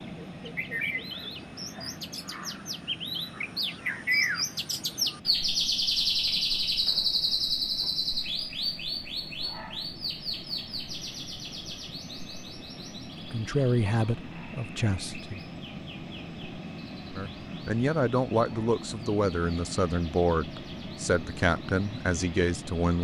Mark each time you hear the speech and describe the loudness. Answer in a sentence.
You can hear the speech briefly from 13.2 to 15.4 s; and from 17.1 to 22.9 s, at a steady volume.